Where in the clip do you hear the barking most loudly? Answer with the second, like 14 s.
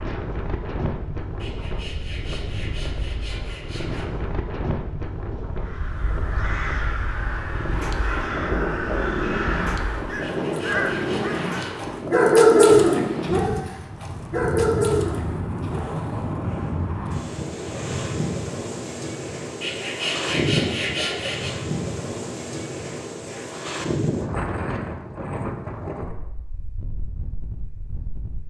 13 s.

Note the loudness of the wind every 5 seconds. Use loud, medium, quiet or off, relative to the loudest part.
medium, loud, loud, loud, loud, medium.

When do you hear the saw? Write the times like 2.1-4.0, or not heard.
1.4-4.1, 10.2-11.9, 19.6-21.6.